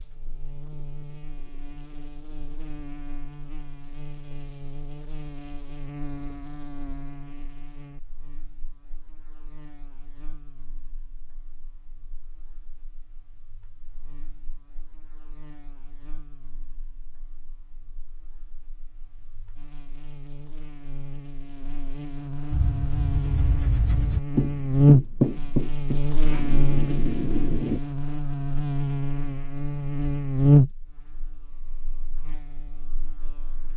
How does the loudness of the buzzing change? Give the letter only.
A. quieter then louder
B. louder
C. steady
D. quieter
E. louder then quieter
A.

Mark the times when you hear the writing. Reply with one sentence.
The writing can be heard from 22.5 to 27.8 s.